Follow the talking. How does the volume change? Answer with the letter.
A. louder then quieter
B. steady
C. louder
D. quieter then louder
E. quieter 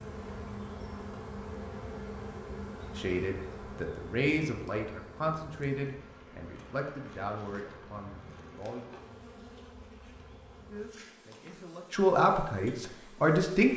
D.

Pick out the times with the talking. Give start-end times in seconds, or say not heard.
3.0-8.8, 10.7-13.7.